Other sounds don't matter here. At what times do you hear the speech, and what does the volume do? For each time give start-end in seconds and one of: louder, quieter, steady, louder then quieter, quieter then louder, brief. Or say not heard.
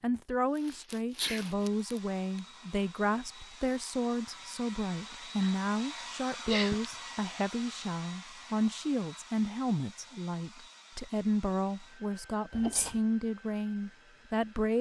0.0-14.7 steady.